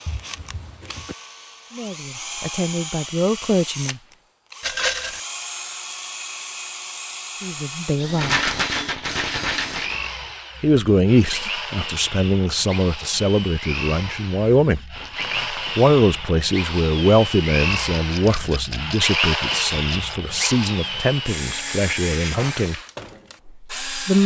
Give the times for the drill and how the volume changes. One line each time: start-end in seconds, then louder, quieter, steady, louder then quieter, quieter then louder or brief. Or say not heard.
0.0-24.2 louder.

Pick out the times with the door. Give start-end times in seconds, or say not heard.
0.1-1.1, 14.9-15.8.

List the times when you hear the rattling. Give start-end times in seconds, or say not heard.
4.6-5.2, 8.2-10.1, 17.7-20.1.